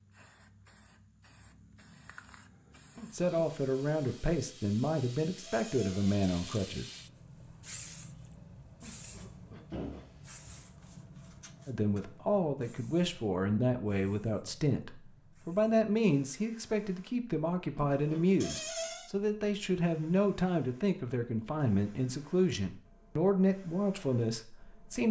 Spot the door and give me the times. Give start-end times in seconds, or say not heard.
5.4-6.6, 9.7-10.7, 18.4-19.1.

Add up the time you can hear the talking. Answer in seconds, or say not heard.
17 s.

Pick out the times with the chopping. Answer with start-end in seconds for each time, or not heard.
not heard.